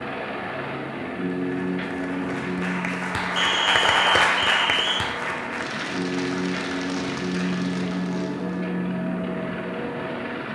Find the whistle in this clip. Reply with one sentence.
You can hear the whistle from 3.4 to 5.0 s.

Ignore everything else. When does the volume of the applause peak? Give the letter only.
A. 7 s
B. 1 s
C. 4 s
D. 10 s
C.